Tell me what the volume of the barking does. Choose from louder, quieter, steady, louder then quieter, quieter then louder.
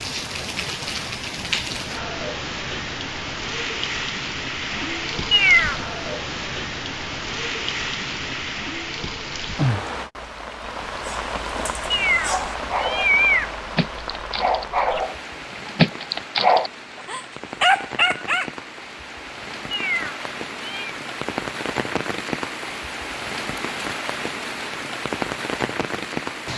louder.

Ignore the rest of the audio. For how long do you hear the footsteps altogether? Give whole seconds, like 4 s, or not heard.
not heard.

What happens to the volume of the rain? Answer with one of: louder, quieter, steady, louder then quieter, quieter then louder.
quieter then louder.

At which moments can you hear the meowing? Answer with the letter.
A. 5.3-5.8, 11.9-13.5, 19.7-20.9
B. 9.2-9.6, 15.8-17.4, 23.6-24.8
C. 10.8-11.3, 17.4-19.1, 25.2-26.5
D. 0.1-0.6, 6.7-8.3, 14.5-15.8
A.